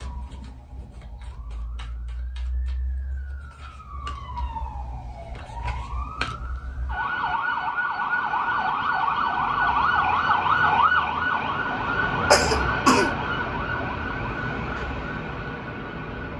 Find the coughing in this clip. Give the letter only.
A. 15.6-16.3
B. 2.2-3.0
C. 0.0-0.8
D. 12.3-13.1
D.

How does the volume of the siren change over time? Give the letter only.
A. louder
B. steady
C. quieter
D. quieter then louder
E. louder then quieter
E.